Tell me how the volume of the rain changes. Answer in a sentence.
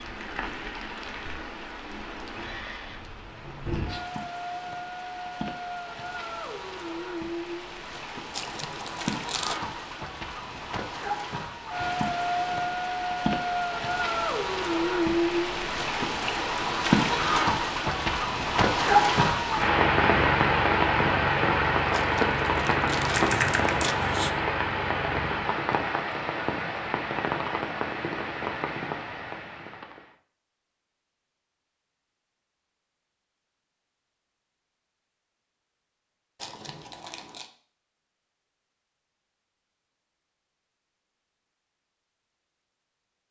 The volume of the rain goes up, then down.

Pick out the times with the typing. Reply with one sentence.
The typing can be heard from 23.1 to 24.3 s.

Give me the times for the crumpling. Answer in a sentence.
You can hear the crumpling from 8.3 to 9.6 s, from 21.9 to 23.9 s and from 36.4 to 37.5 s.